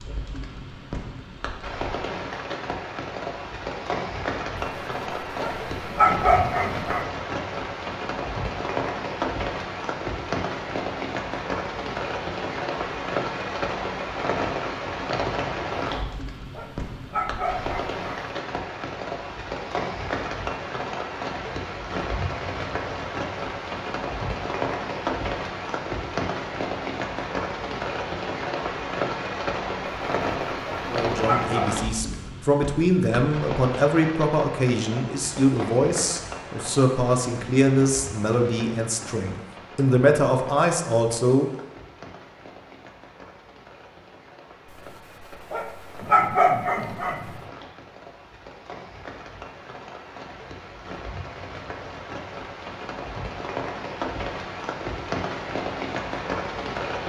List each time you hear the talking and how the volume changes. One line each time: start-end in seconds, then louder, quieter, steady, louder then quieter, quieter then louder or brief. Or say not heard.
30.9-41.5 steady.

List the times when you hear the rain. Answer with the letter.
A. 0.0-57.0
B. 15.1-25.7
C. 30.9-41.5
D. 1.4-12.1
A.